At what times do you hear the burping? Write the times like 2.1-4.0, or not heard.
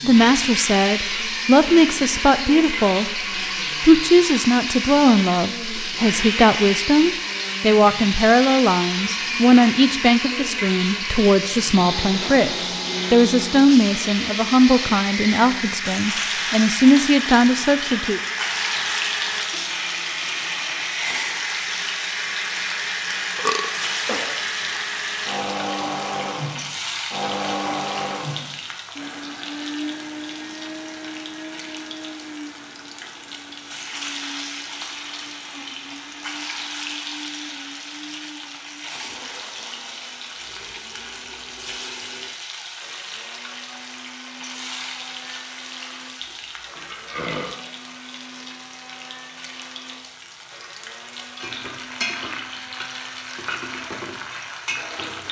23.4-24.4, 46.2-47.6.